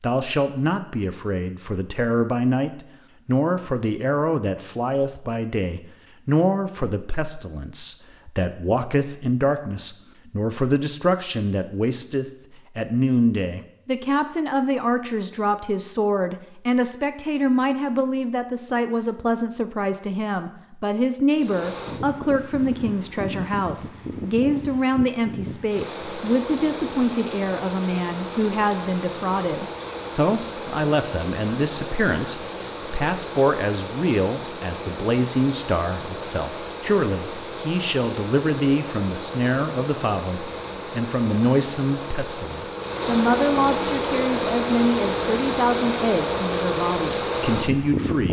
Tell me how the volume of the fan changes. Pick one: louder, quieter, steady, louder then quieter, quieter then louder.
louder.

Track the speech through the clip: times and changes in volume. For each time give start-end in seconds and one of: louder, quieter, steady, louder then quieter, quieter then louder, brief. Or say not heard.
0.0-48.2 steady.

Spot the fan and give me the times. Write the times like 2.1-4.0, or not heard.
21.4-48.2.